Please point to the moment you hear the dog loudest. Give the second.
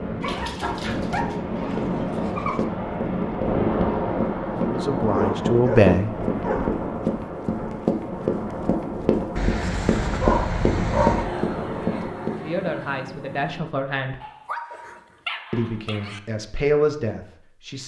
11 s.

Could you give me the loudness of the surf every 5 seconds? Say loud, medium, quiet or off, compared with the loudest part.
loud, loud, medium, off.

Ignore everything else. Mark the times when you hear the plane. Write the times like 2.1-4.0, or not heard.
11.1-13.6.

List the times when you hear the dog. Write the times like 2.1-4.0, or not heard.
0.2-2.6, 5.1-6.8, 9.3-11.3, 14.2-16.2.